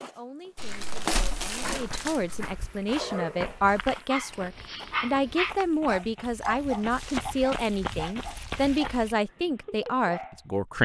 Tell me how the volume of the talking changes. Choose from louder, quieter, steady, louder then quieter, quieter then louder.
louder.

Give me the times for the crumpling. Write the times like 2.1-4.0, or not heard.
0.6-2.5, 6.4-8.9.